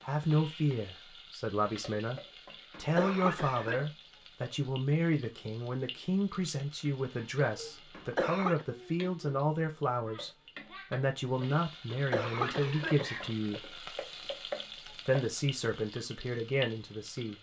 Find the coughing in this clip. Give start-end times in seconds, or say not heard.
2.7-3.8, 7.9-8.7, 11.9-13.6.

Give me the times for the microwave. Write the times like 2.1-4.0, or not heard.
not heard.